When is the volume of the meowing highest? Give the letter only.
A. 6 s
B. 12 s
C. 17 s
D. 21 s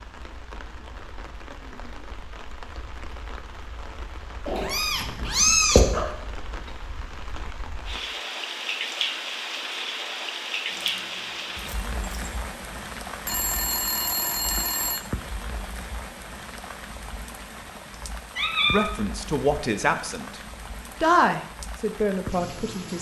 A.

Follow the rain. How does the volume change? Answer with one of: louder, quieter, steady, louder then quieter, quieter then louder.
louder then quieter.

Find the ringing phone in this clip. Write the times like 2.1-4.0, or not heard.
13.2-15.0.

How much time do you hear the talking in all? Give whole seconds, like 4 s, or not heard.
4 s.